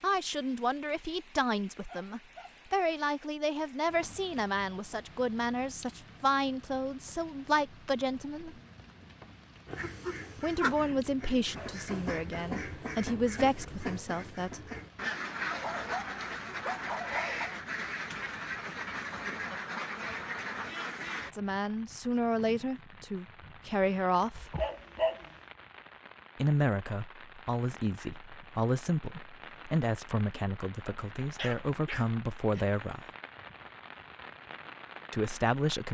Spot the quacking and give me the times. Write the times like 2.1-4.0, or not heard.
9.7-21.3.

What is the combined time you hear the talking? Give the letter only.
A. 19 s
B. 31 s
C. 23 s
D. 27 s
C.